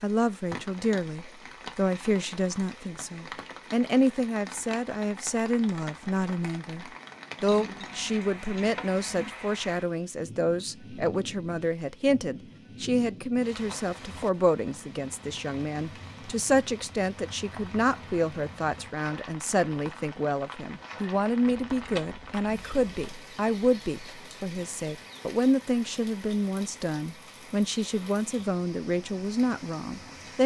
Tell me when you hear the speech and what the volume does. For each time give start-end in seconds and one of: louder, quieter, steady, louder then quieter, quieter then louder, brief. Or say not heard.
0.0-30.4 steady.